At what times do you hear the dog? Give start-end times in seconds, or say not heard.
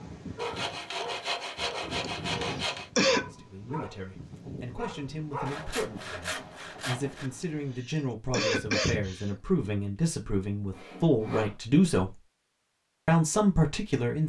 0.0-5.7.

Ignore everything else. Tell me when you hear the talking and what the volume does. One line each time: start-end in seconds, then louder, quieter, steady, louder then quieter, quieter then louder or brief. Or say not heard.
3.2-12.2 louder
13.1-14.2 brief.